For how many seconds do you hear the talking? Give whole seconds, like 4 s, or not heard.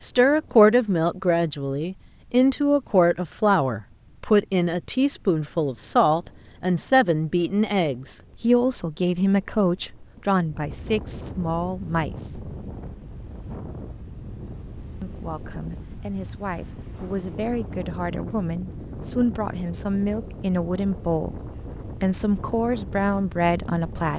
22 s.